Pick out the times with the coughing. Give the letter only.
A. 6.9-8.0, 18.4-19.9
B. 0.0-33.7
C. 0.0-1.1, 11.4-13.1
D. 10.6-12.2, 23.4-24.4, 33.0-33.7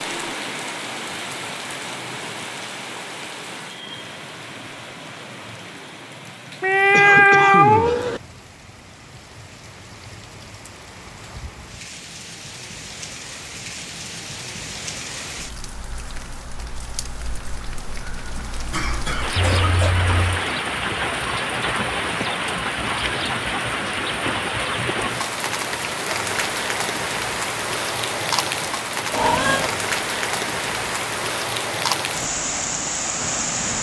A.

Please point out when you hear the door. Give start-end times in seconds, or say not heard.
not heard.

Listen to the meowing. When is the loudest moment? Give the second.
7 s.